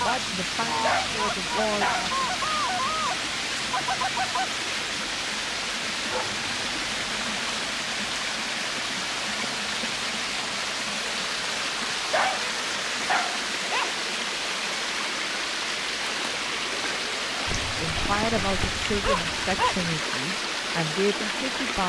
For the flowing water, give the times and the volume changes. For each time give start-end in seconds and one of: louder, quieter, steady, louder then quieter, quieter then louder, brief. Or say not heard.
0.0-21.8 steady.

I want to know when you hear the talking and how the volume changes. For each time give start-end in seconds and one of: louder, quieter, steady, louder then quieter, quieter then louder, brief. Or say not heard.
0.0-2.3 brief
17.8-21.8 quieter then louder.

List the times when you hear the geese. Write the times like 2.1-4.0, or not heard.
0.0-4.5.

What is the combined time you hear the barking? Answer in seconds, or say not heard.
7 s.